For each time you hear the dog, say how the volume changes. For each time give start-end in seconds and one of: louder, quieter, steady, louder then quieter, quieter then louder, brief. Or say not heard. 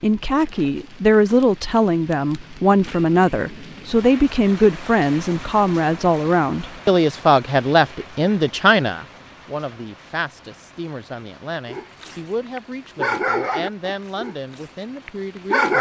11.7-15.7 louder then quieter.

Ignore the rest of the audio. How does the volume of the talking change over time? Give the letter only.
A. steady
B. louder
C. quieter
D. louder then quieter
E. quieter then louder
C.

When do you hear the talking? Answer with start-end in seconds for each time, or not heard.
0.0-15.7.